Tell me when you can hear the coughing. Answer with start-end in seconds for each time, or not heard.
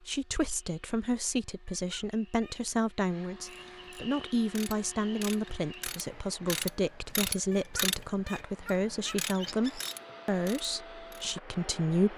not heard.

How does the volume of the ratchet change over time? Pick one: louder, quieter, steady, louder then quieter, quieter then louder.
louder then quieter.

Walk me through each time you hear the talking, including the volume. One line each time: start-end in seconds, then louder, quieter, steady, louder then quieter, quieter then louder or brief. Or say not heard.
0.1-12.1 steady.